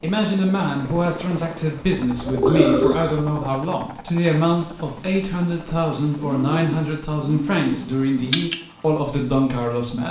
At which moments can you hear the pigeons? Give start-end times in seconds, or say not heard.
1.9-3.5, 6.2-8.6.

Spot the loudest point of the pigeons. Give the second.
3 s.